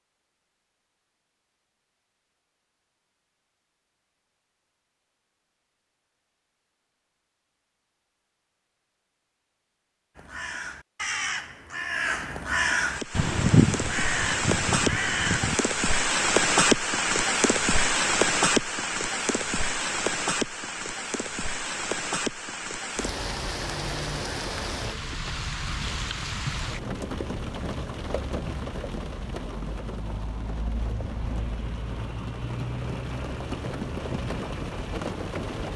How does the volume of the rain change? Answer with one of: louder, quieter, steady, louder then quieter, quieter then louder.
quieter.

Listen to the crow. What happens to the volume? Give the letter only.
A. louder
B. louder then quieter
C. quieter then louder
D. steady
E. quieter
B.